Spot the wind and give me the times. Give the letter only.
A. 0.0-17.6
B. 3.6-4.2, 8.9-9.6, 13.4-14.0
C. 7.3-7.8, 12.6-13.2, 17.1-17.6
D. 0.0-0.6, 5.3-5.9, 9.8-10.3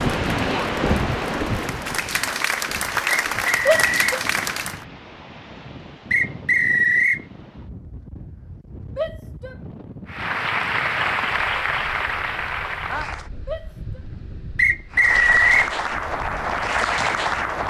A.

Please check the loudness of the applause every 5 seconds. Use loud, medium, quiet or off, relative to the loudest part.
loud, off, loud, loud.